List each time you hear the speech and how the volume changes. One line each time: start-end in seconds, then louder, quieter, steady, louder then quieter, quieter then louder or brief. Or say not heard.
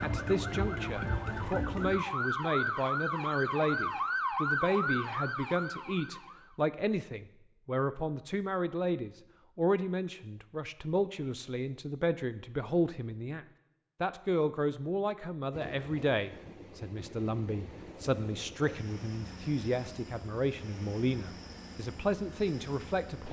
0.0-23.2 steady.